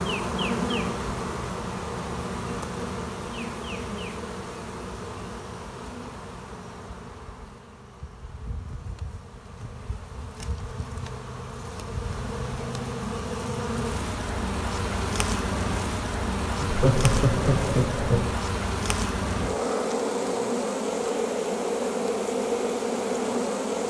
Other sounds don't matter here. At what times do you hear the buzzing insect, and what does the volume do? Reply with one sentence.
The buzzing insect can be heard from 0.0 to 23.8 s, getting quieter then louder.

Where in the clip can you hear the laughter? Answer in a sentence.
You can hear the laughter from 16.6 to 18.2 s.